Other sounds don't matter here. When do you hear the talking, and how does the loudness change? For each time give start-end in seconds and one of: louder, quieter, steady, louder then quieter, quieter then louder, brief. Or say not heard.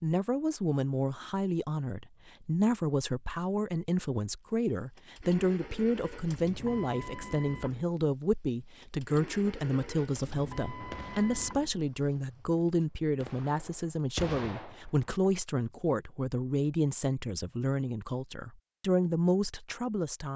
0.0-20.3 steady.